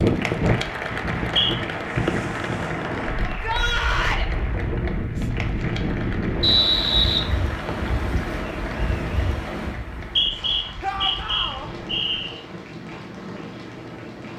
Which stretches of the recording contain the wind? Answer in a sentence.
You can hear the wind from 0.0 to 14.3 s.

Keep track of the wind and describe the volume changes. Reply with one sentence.
The volume of the wind goes down.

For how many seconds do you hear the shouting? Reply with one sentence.
You can hear the shouting for 2 seconds altogether.